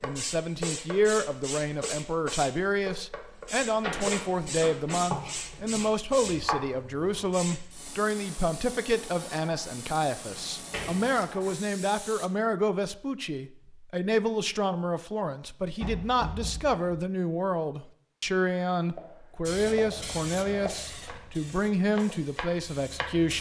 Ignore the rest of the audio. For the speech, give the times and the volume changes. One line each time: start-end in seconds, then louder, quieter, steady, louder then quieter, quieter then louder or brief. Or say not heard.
0.0-23.3 steady.